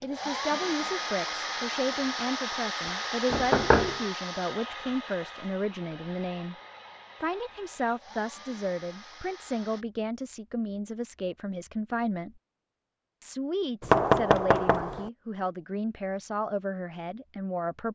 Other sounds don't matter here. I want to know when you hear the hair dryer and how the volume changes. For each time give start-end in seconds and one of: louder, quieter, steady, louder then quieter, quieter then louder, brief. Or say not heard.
0.0-9.8 quieter.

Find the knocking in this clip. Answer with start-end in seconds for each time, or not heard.
3.3-4.0, 13.8-15.1.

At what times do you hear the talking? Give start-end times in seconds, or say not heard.
0.0-6.5, 7.2-12.3, 13.2-17.9.